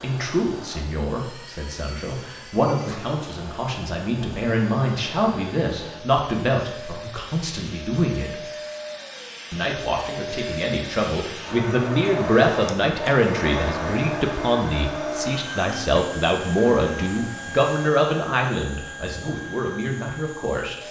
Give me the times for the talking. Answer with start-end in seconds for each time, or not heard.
0.0-8.4, 9.5-20.8.